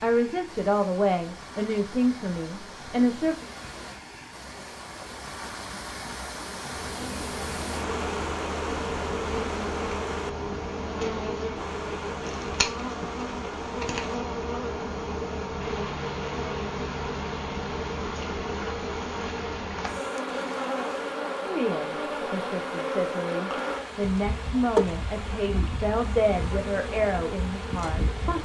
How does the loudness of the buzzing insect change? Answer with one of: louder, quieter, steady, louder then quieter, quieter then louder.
steady.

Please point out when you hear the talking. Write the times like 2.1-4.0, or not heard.
0.0-3.5, 21.4-28.4.